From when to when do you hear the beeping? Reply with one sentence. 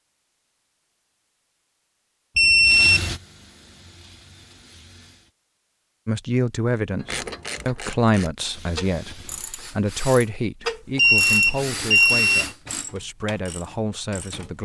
You can hear the beeping from 2.4 to 3.1 s and from 10.9 to 12.5 s.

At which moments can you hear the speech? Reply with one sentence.
The speech can be heard from 6.0 to 14.6 s.